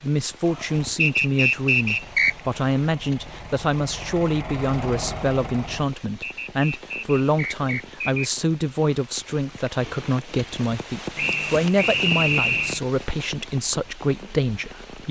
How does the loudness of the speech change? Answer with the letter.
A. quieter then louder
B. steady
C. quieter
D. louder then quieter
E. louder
B.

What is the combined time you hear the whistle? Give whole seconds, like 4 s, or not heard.
5 s.